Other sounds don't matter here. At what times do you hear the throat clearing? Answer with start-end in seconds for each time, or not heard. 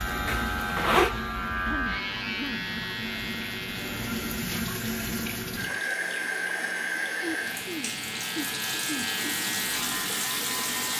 1.6-2.6, 7.2-9.1.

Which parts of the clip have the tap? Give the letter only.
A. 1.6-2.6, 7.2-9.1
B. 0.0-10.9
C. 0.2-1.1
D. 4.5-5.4
B.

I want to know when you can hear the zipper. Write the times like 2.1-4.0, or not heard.
0.2-1.1.